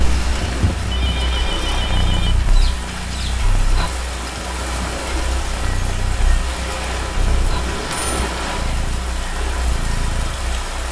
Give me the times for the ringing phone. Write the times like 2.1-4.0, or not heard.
0.4-2.4, 7.2-8.3.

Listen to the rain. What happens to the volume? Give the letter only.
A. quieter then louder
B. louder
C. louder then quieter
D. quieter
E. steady
E.